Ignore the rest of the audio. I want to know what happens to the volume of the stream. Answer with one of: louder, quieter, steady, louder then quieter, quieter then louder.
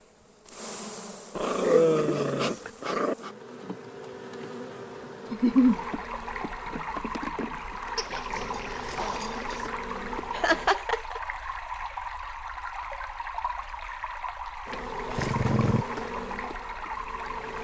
steady.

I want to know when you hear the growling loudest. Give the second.
2 s.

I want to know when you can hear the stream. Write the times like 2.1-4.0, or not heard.
5.2-17.5.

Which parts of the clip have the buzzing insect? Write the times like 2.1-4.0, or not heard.
0.0-10.7, 14.7-17.5.